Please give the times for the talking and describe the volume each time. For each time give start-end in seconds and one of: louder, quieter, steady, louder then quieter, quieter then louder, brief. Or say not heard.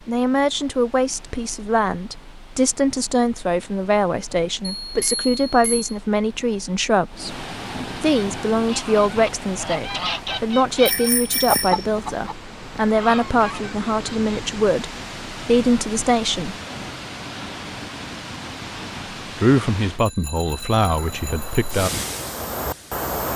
0.1-16.6 steady
19.4-21.9 brief.